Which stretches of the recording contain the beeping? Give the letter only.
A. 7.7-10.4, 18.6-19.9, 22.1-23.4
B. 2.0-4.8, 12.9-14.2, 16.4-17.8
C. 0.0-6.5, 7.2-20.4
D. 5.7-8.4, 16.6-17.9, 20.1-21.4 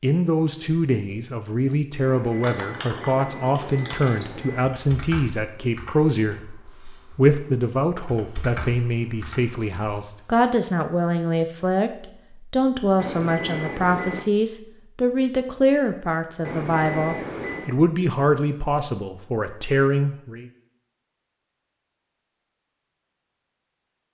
B.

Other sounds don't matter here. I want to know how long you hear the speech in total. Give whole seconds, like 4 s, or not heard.
20 s.